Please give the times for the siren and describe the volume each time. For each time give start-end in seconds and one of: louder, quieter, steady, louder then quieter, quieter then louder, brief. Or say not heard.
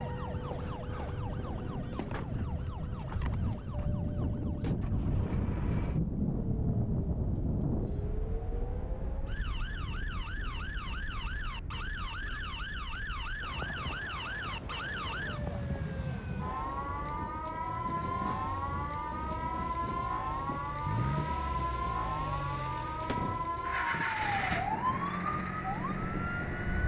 0.0-26.8 louder.